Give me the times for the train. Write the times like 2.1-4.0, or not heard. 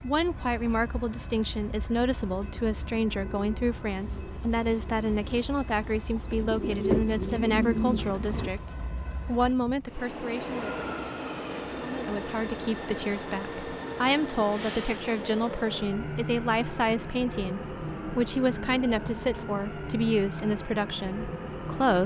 0.0-22.0.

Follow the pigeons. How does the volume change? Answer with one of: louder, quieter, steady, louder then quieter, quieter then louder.
louder.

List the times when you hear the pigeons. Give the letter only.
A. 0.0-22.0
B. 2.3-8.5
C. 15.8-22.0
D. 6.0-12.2
B.